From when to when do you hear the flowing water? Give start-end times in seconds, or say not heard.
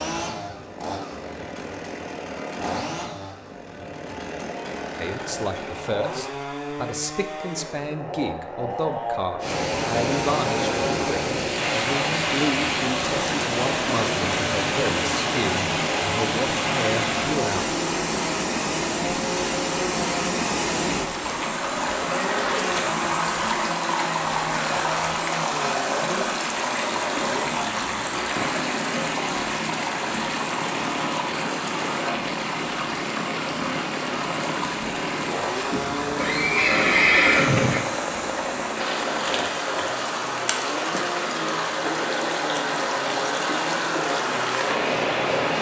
9.4-45.5.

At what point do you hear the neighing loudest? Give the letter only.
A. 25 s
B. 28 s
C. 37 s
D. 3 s
C.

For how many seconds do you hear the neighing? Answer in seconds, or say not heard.
2 s.